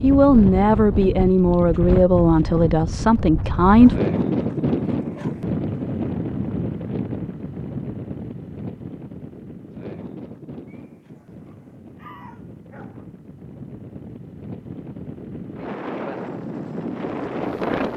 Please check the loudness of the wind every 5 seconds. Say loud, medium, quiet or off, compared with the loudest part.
loud, loud, quiet, loud.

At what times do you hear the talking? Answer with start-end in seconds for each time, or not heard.
0.0-4.0.